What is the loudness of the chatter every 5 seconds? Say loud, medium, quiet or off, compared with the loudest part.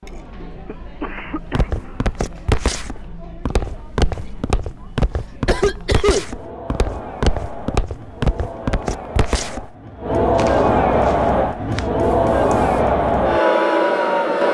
quiet, quiet, loud.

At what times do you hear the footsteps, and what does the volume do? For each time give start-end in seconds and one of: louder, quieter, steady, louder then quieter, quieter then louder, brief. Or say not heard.
1.6-11.9 quieter.